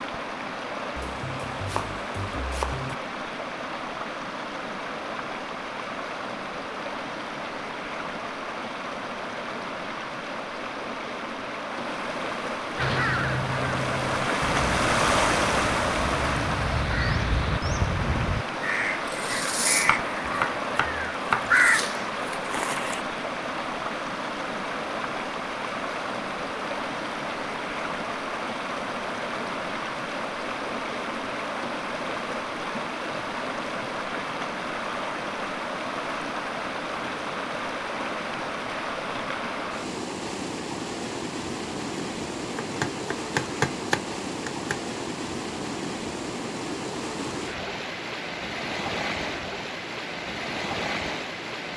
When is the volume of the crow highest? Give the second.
22 s.